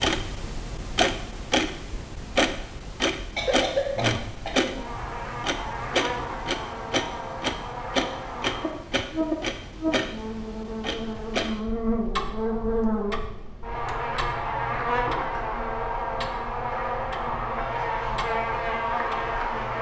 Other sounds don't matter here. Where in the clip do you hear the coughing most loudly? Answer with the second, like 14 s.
4 s.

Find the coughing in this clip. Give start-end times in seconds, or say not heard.
3.4-4.8.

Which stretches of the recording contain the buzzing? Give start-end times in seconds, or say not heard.
4.0-19.7.